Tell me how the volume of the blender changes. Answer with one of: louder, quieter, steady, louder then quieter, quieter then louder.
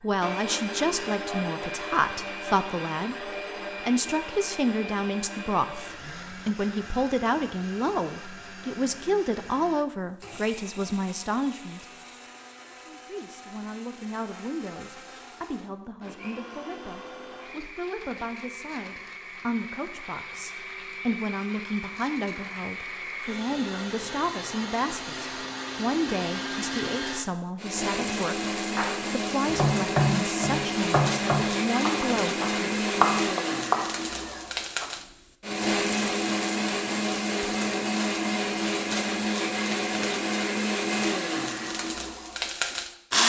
quieter then louder.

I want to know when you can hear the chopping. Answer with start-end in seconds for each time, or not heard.
28.8-34.9.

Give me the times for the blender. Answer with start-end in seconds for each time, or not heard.
0.0-43.2.